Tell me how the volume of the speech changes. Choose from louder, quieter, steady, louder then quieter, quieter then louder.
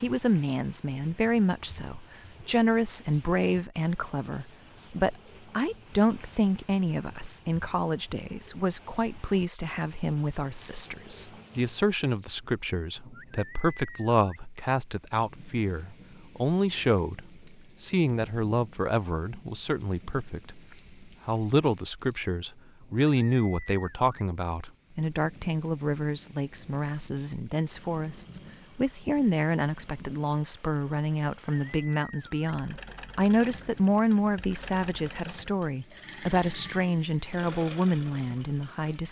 steady.